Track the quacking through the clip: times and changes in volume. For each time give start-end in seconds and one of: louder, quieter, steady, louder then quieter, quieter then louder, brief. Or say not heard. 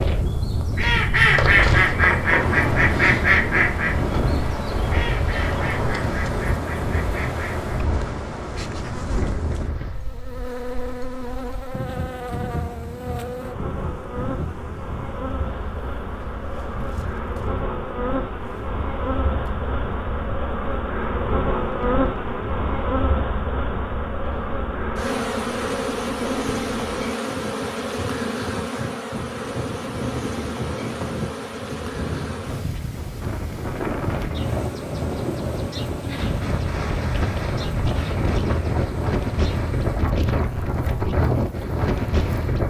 0.7-7.7 quieter.